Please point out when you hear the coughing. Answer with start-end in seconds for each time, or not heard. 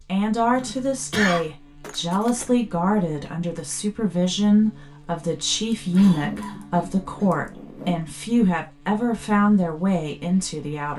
0.6-1.4, 5.7-7.5.